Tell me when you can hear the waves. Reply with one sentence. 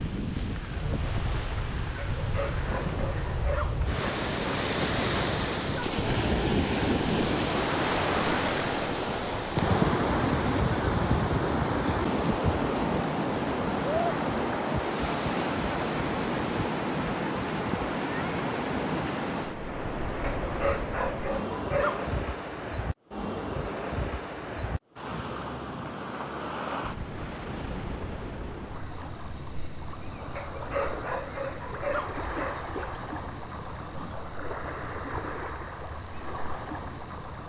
You can hear the waves from 0.0 to 37.4 s.